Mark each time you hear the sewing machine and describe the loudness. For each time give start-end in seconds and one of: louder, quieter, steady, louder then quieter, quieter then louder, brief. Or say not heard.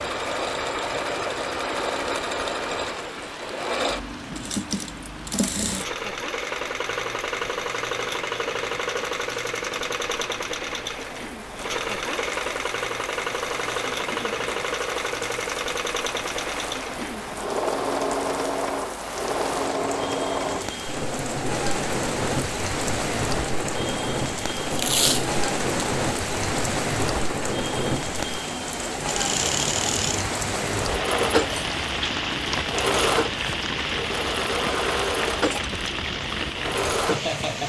0.0-37.6 steady.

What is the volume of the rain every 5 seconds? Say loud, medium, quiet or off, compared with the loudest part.
medium, quiet, medium, medium, loud, loud, loud, loud.